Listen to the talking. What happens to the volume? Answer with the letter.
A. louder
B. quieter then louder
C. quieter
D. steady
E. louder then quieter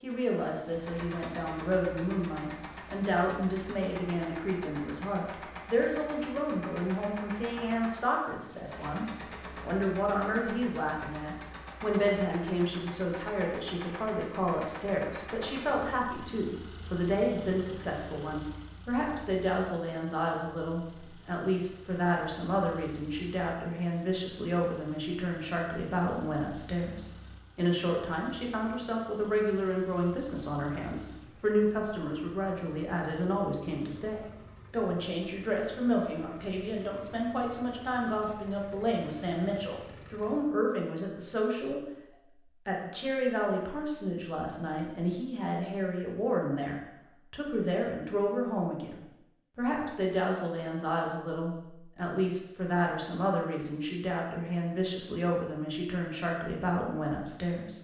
D.